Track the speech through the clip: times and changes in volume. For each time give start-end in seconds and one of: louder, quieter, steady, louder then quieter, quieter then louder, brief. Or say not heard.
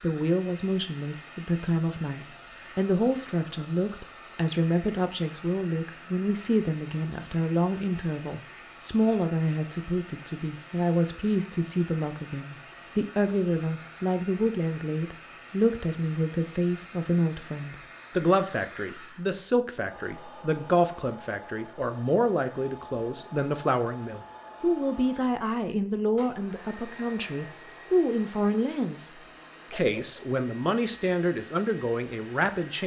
0.0-32.8 steady.